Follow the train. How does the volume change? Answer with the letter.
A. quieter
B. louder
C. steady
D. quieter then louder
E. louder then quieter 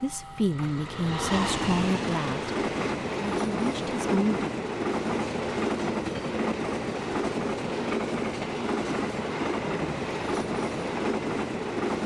C.